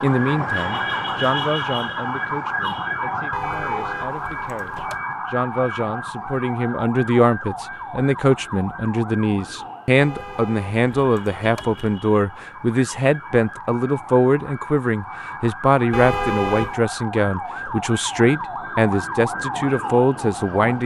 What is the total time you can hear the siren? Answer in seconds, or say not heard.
21 s.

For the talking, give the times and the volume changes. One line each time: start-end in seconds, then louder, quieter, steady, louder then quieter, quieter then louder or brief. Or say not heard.
0.0-20.8 louder.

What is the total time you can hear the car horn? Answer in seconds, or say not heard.
5 s.